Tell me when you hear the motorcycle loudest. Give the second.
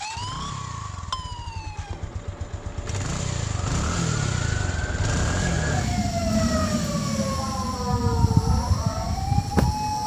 4 s.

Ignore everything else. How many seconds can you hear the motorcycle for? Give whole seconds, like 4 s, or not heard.
10 s.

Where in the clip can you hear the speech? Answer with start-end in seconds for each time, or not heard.
not heard.